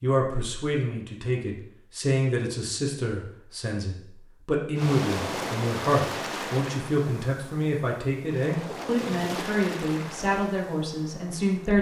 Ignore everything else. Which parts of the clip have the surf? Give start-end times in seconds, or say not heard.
4.8-11.7.